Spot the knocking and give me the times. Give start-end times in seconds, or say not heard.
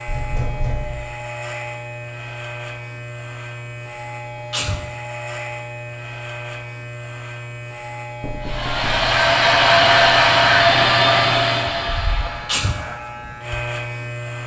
0.1-1.1, 8.2-9.1.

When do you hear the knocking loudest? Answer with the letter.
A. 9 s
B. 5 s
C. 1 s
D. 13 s
C.